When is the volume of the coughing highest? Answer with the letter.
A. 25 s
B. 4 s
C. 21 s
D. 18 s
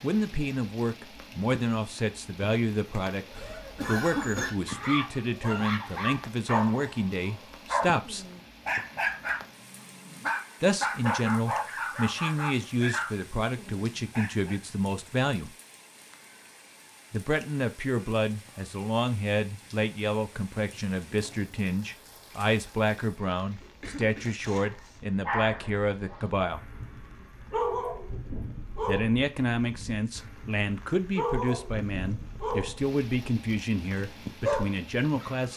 B.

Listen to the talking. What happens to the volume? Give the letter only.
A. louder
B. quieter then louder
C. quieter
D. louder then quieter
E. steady
E.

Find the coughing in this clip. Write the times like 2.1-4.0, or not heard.
3.3-4.5, 23.6-25.0.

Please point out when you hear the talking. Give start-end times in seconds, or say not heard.
0.0-8.2, 10.6-15.5, 17.1-26.7, 28.7-35.5.